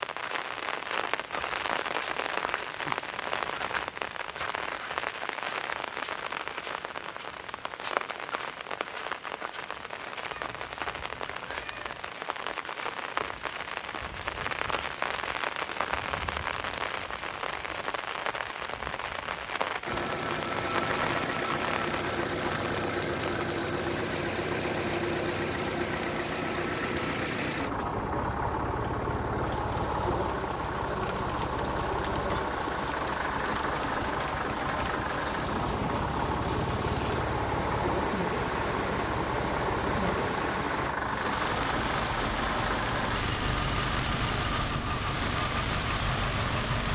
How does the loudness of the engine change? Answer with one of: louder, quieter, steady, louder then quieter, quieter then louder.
steady.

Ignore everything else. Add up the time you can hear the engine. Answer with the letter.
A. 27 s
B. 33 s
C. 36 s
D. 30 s
A.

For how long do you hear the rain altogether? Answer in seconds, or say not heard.
47 s.